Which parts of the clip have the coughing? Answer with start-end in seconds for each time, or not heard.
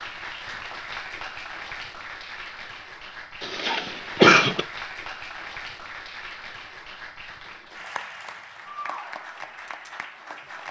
3.4-4.7.